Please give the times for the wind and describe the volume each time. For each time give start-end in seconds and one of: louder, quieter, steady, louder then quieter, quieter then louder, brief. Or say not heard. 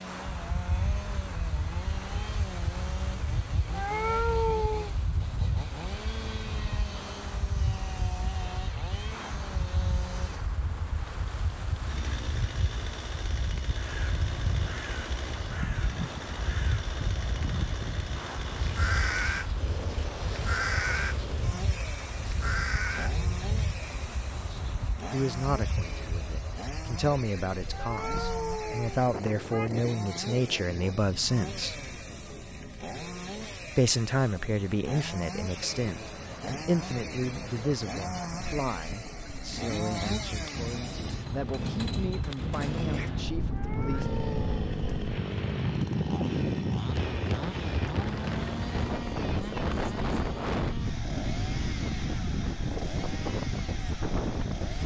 0.0-54.8 louder.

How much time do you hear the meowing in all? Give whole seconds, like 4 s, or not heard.
4 s.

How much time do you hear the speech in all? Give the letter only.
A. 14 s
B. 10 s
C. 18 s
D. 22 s
C.